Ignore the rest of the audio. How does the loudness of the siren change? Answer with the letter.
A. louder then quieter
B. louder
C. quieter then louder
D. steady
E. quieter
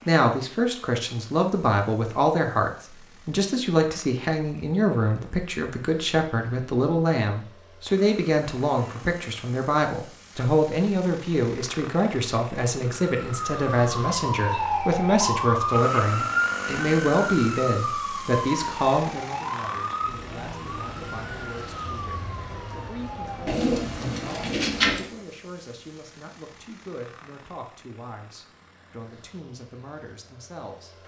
E.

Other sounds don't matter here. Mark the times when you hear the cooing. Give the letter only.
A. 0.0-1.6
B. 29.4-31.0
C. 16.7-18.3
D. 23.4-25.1
D.